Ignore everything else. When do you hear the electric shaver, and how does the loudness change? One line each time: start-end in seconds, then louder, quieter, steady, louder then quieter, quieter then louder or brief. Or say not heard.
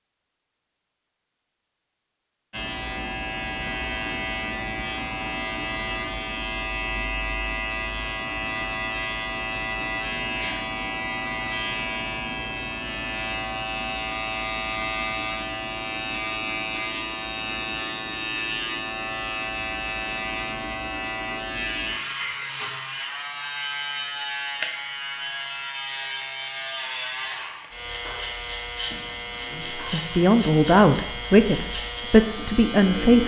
2.5-33.2 steady.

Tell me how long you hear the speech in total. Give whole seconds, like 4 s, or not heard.
4 s.